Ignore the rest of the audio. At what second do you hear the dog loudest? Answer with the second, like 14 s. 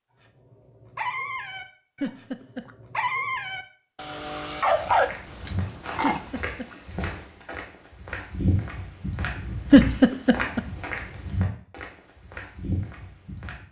5 s.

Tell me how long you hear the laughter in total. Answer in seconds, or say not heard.
2 s.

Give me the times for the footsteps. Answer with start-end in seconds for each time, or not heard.
4.6-13.6.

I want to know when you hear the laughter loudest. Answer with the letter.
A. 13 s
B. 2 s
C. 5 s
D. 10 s
D.